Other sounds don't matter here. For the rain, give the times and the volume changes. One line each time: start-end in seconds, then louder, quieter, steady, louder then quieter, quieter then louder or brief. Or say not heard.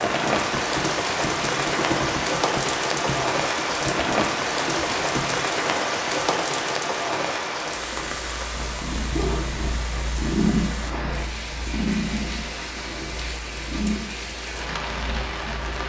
0.0-15.8 quieter.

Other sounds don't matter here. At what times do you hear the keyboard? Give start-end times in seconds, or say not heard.
0.1-5.5.